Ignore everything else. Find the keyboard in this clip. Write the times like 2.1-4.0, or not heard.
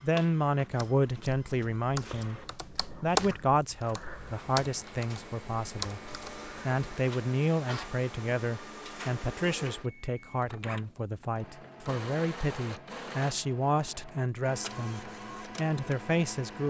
0.7-6.7.